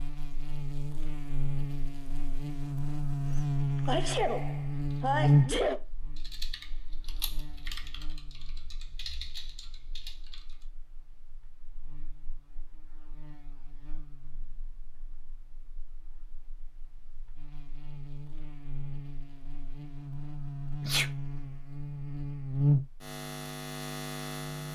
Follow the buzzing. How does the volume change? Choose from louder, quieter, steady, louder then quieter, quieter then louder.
quieter then louder.